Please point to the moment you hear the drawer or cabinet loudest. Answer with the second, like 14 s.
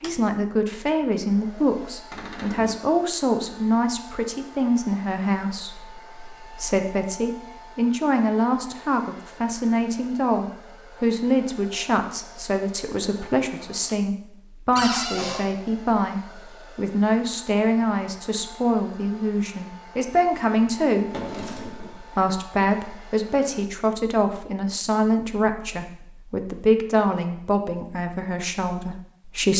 15 s.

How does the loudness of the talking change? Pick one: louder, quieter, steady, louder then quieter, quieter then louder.
steady.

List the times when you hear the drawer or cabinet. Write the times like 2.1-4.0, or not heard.
2.1-2.9, 14.8-15.4, 20.9-22.0.